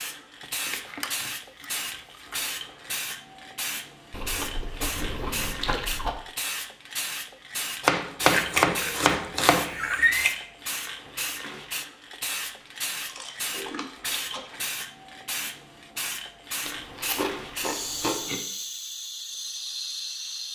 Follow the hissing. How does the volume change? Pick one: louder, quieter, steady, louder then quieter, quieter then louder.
steady.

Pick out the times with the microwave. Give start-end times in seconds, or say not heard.
not heard.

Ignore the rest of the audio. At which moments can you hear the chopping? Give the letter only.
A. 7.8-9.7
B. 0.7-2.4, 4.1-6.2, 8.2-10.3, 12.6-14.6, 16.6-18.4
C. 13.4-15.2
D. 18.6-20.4
A.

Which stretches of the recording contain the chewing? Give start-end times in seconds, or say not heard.
0.7-2.4, 4.1-6.2, 8.2-10.3, 12.6-14.6, 16.6-18.4.